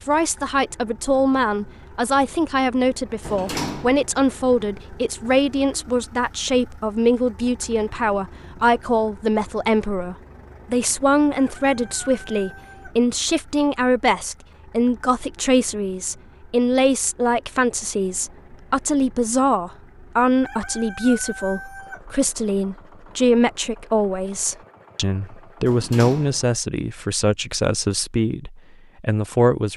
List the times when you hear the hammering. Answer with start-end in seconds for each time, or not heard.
not heard.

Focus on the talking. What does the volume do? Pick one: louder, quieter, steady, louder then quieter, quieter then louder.
steady.